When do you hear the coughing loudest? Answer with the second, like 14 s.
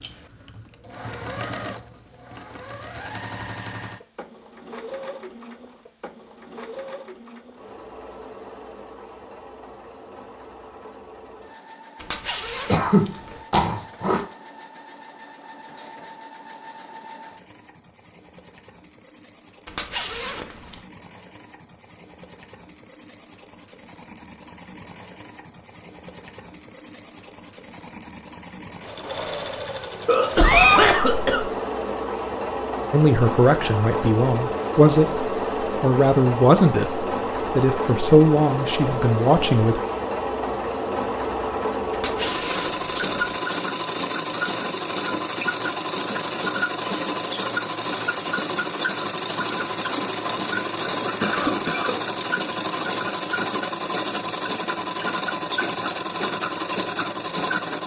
31 s.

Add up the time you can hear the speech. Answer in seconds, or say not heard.
7 s.